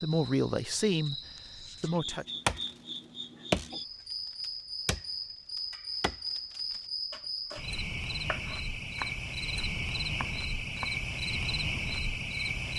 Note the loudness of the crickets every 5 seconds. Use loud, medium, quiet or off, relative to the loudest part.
medium, loud, loud.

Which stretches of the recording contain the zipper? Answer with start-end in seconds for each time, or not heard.
not heard.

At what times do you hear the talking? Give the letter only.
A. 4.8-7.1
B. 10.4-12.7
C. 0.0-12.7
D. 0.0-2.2
D.